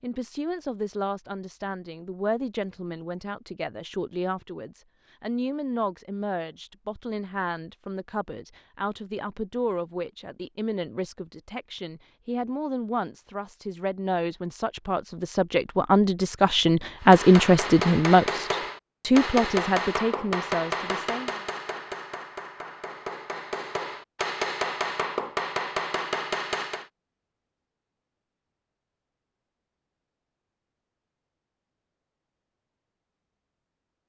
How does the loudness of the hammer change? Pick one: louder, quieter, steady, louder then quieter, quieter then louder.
quieter then louder.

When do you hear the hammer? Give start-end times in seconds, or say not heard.
17.0-26.9.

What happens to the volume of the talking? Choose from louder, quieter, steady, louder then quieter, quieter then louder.
louder.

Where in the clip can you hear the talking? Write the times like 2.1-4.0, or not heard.
0.0-21.4.